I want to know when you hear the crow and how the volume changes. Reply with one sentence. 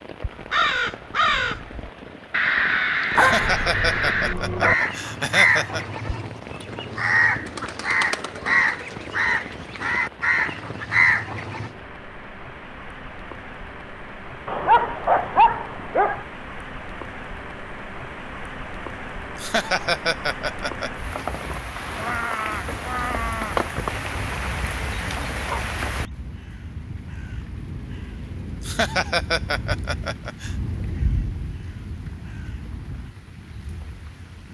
The crow can be heard from 0.4 to 11.8 s, at a steady volume; and from 21.7 to 33.1 s, getting quieter.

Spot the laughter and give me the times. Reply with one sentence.
You can hear the laughter from 3.1 to 5.8 s, from 19.4 to 20.9 s and from 28.6 to 30.6 s.